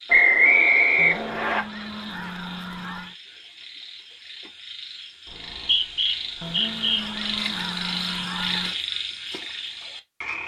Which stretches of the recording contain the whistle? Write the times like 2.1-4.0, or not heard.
0.1-1.6, 5.2-7.0.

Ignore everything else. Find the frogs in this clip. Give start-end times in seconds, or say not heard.
0.0-10.4.